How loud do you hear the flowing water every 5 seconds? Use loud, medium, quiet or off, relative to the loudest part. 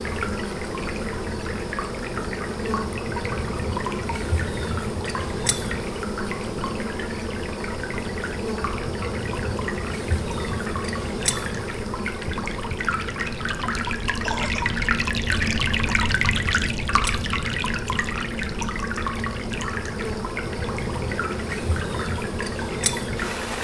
medium, medium, loud, loud, medium.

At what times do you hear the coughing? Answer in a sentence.
The coughing can be heard from 14.2 to 14.8 s.